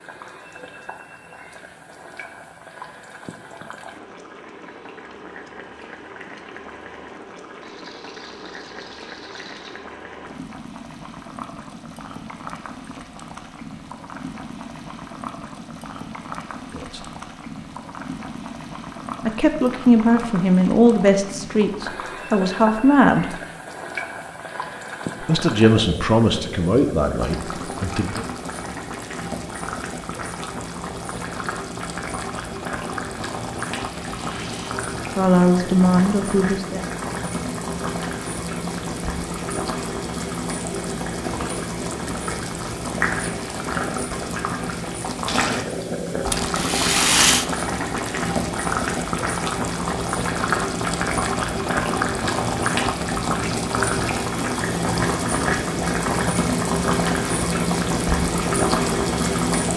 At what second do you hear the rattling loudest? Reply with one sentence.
The loudest moment of the rattling is at 47 seconds.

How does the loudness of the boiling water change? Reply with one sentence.
The volume of the boiling water goes up.